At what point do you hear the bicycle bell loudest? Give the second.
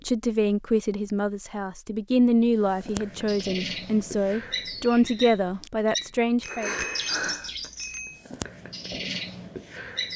7 s.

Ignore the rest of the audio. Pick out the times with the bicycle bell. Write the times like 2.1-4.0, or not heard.
6.4-8.2.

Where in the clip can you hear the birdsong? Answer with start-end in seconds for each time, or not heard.
2.6-10.1.